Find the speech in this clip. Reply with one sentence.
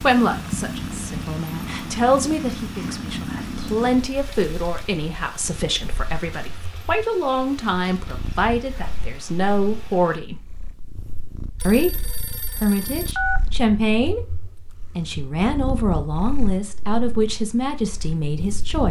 You can hear the speech from 0.0 to 10.3 s, from 11.7 to 14.3 s and from 14.9 to 18.8 s.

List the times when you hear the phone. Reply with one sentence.
The phone can be heard from 11.6 to 13.4 s.